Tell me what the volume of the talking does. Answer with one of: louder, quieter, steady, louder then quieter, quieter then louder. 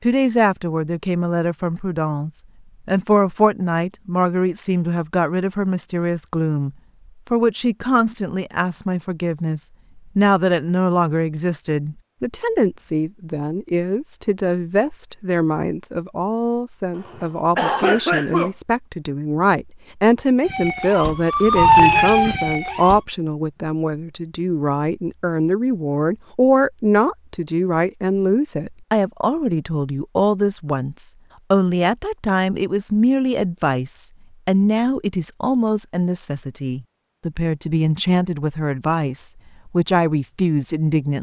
steady.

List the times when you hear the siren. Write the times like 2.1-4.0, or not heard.
20.4-23.1.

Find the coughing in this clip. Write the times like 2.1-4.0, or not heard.
16.9-18.5.